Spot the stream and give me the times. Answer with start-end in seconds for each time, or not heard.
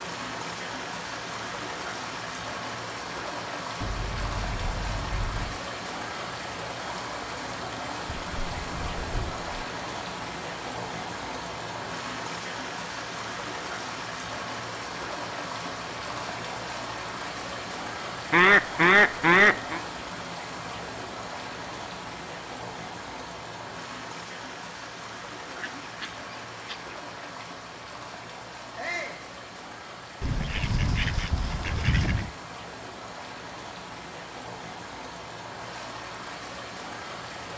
0.0-37.5.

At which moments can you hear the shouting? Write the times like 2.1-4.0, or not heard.
28.8-29.2.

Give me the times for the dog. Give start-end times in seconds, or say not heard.
not heard.